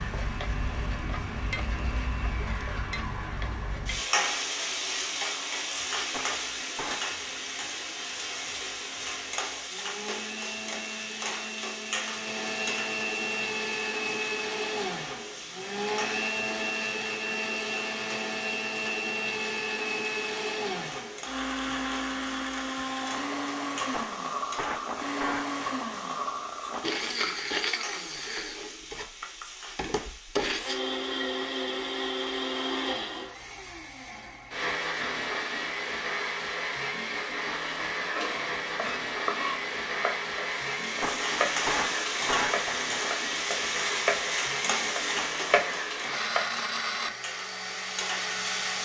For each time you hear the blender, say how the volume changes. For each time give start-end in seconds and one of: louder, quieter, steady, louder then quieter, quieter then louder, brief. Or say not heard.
0.0-48.8 louder.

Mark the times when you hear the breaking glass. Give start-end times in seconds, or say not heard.
6.1-7.0, 23.9-25.5, 41.0-42.9.